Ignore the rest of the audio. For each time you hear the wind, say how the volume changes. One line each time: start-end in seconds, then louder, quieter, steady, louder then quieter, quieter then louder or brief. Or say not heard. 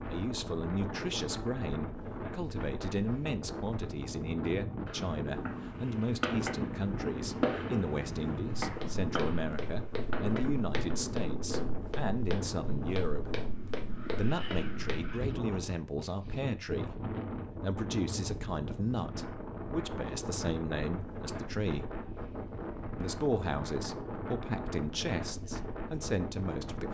0.0-26.8 steady.